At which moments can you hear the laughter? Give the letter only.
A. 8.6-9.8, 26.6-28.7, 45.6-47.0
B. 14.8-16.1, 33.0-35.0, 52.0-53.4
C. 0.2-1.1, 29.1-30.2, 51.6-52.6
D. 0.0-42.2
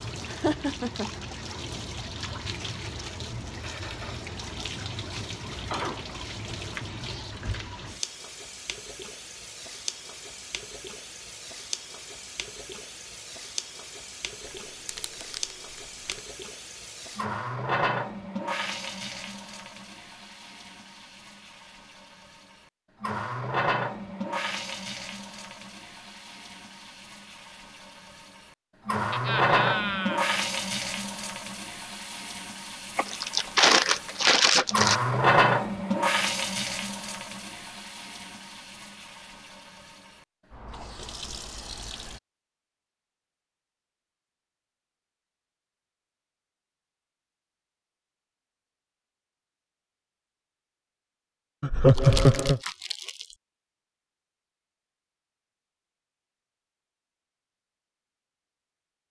C.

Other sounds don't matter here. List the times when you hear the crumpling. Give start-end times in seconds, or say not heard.
14.8-16.1, 33.0-35.0, 52.0-53.4.